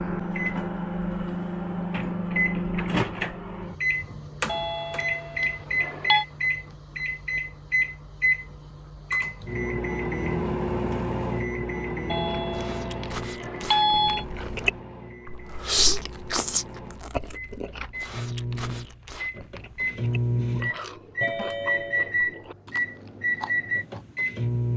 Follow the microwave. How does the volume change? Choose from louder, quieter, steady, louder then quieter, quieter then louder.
quieter then louder.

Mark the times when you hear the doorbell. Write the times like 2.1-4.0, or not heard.
4.5-6.2, 12.1-14.2, 21.2-22.1.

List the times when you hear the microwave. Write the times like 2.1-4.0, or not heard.
0.0-24.7.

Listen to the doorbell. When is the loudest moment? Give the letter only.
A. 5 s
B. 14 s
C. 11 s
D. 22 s
B.